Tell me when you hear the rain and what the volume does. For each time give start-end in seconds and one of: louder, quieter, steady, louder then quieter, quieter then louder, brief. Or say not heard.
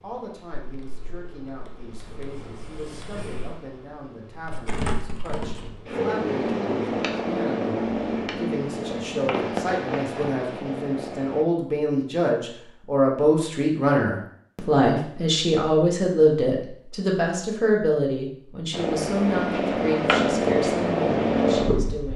not heard.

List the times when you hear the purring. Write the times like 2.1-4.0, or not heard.
0.0-11.4, 18.7-22.1.